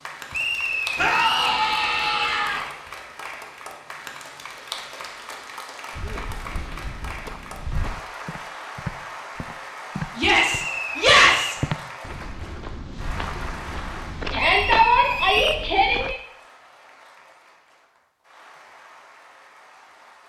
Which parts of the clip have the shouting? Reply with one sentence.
The shouting can be heard from 0.9 to 2.6 s, from 10.2 to 11.6 s and from 14.3 to 16.1 s.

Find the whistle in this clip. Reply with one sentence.
You can hear the whistle from 0.3 to 1.6 s, from 10.3 to 11.7 s and from 14.3 to 15.7 s.